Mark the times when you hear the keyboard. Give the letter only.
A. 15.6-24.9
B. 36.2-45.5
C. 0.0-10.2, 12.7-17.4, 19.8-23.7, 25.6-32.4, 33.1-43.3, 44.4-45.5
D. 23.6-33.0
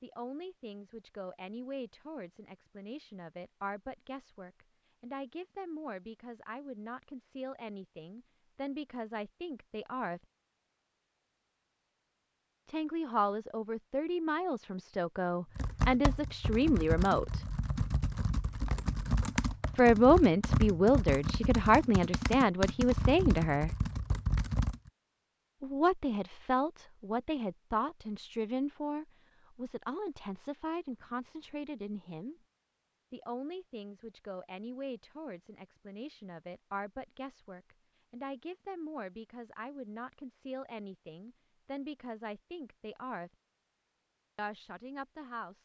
A.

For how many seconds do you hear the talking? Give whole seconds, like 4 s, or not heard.
37 s.